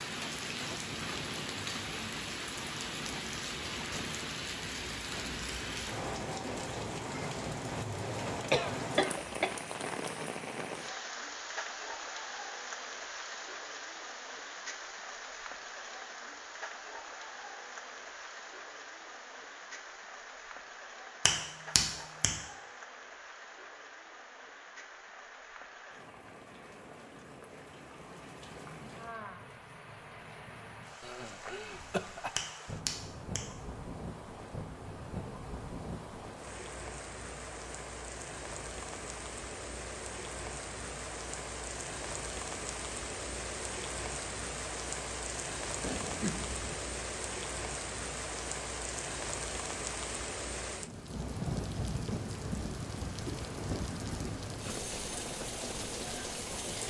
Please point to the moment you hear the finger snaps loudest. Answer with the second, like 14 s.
22 s.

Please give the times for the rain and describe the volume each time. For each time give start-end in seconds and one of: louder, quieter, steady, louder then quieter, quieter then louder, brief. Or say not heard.
0.0-56.8 quieter then louder.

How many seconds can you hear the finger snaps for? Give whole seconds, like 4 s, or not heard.
2 s.